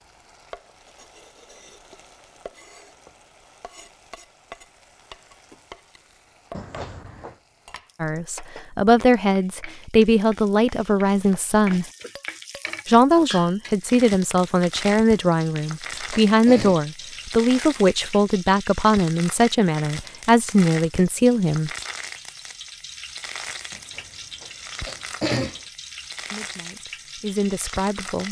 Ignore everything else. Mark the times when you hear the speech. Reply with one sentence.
The speech can be heard from 8.0 to 11.8 s, from 12.8 to 21.7 s and from 26.3 to 28.2 s.